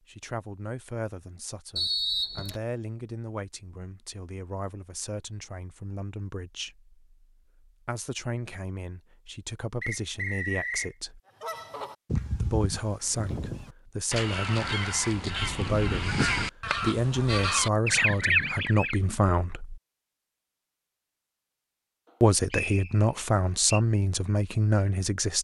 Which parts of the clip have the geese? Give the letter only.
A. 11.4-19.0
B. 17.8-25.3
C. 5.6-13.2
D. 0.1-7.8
A.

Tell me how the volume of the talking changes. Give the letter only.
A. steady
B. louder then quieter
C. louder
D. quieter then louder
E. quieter
C.